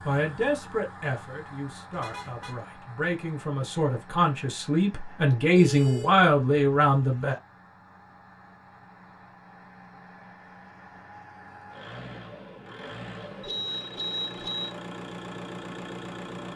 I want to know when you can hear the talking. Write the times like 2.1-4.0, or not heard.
0.0-7.3.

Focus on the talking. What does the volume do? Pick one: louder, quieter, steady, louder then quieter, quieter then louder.
quieter then louder.